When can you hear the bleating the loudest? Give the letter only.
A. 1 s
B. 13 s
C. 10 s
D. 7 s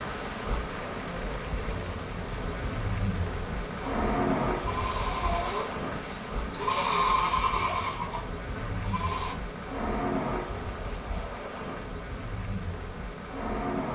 D.